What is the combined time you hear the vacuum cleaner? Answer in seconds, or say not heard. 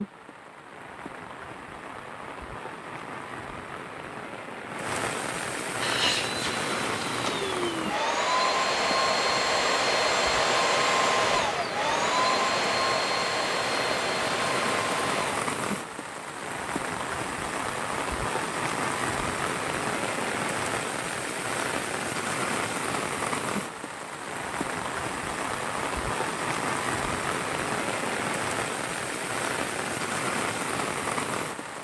10 s.